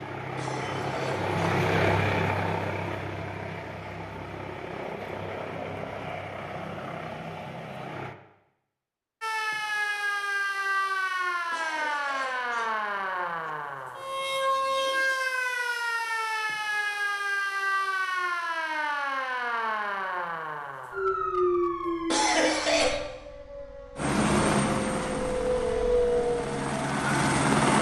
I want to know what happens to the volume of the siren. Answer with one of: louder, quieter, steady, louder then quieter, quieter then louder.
steady.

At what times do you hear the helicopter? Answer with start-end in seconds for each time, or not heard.
0.0-8.2, 23.9-27.7.